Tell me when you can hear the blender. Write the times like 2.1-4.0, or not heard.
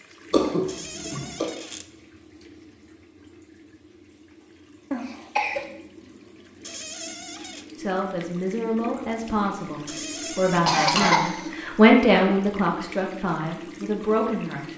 not heard.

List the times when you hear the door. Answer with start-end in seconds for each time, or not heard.
0.7-1.9, 6.6-7.7, 9.8-10.8.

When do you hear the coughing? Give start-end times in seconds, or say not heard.
0.3-1.5, 4.9-5.7, 10.7-11.5.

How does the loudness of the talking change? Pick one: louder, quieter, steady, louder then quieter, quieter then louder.
louder then quieter.